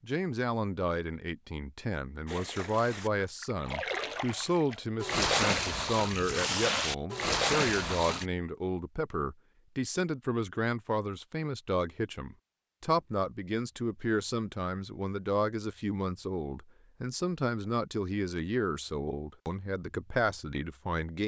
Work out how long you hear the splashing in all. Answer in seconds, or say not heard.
6 s.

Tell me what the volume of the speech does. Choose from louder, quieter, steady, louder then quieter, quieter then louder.
steady.